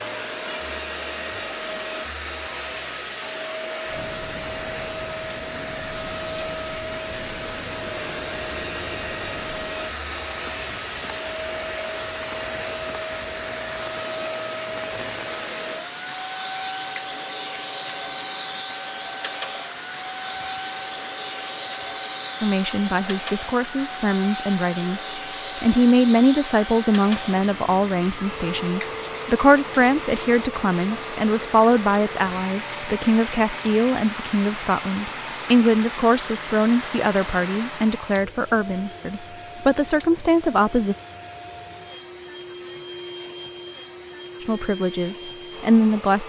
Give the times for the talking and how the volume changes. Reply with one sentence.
The talking can be heard from 22.4 to 41.0 s, at a steady volume; and briefly from 44.4 to 46.2 s.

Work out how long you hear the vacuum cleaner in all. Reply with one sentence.
You can hear the vacuum cleaner for 46 seconds altogether.